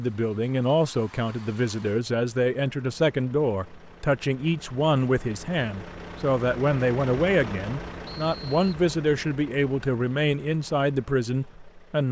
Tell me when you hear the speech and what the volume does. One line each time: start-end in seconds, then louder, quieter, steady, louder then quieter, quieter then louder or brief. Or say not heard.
0.0-12.0 steady.